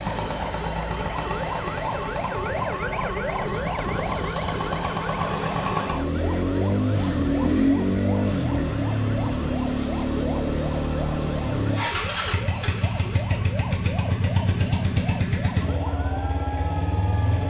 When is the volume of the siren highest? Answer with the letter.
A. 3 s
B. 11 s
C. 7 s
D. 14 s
A.